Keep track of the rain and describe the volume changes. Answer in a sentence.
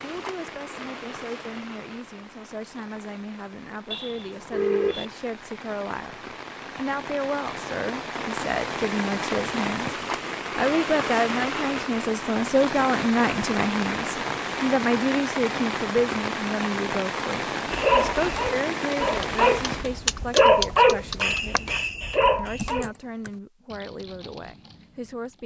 The volume of the rain goes up.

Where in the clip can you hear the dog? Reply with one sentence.
You can hear the dog from 17.7 to 22.9 s.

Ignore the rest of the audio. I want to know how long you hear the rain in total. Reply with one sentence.
The rain can be heard for 20 seconds in total.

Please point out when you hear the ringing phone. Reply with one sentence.
The ringing phone can be heard from 3.9 to 5.0 s.